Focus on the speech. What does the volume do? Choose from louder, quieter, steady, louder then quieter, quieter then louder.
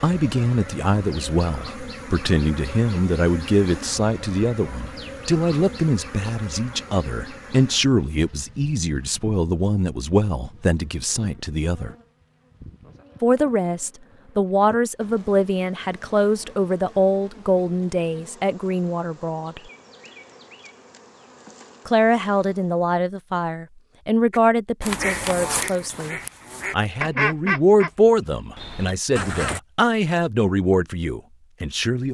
steady.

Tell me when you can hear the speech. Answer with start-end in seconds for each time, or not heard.
0.0-11.9, 13.2-19.6, 21.9-32.1.